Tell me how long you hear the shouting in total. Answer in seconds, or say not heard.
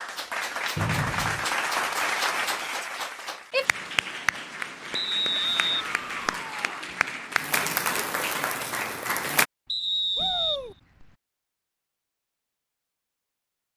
3 s.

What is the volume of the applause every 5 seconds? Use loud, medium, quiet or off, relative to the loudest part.
loud, loud, off.